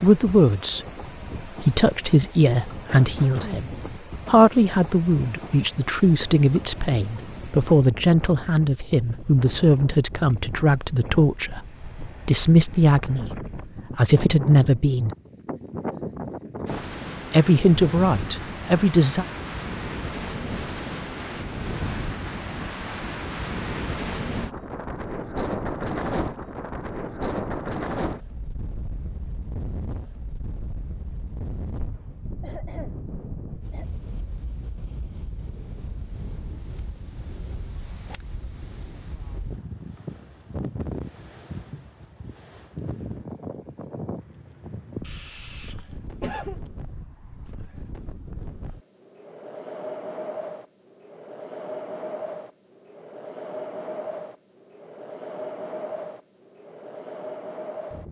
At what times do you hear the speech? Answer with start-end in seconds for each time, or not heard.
0.0-0.8, 1.4-15.2, 17.3-19.2.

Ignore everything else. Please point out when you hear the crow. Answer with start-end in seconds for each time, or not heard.
not heard.